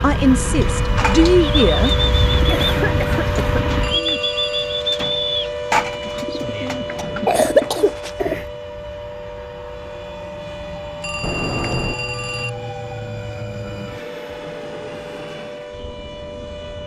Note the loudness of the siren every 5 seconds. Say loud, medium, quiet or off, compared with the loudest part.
loud, loud, medium, medium.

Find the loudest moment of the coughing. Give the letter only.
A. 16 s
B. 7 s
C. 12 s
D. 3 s
B.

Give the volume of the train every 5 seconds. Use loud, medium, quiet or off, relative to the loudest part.
loud, quiet, medium, quiet.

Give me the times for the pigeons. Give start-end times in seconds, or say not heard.
0.6-8.4.